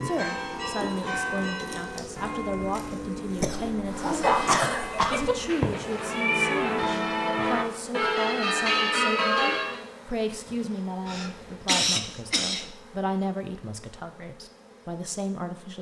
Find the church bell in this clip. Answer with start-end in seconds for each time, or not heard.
0.0-9.8.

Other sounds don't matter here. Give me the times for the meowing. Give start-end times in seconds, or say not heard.
5.0-6.8.